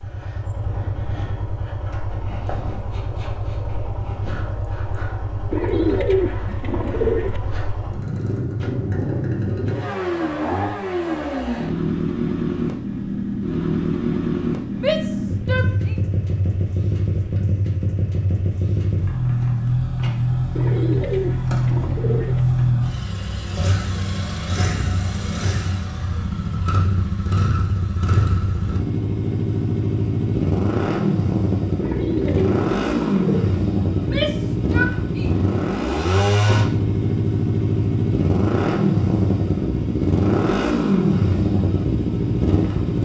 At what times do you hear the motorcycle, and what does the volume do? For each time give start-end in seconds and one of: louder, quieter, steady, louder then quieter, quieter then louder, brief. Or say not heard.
0.0-43.0 louder.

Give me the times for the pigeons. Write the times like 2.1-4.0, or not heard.
5.5-7.4, 20.5-22.4, 31.8-33.5.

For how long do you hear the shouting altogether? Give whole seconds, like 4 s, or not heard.
3 s.